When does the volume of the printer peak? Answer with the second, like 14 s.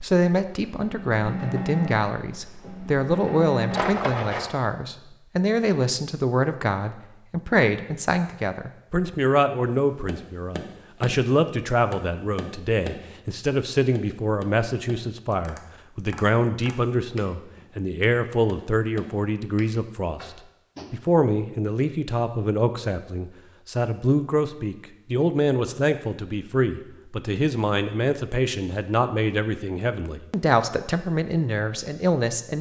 4 s.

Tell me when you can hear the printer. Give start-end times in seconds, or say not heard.
0.0-4.5.